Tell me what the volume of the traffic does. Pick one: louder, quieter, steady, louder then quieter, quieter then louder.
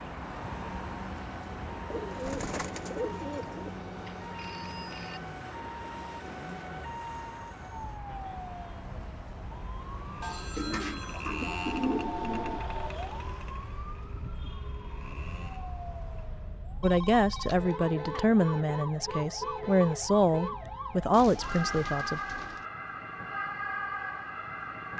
quieter.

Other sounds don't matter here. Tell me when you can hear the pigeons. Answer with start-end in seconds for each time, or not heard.
1.9-3.8, 10.6-12.7, 21.1-22.6.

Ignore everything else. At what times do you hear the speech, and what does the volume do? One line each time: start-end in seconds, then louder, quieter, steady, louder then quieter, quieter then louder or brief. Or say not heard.
16.8-22.2 steady.